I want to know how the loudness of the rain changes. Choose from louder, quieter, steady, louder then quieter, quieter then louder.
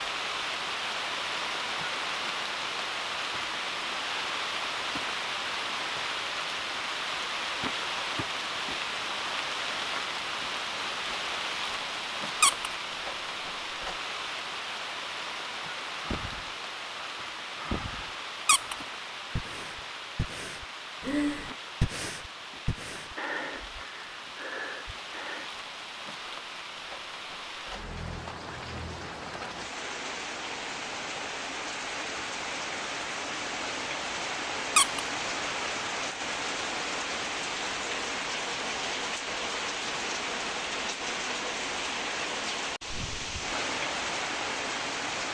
quieter then louder.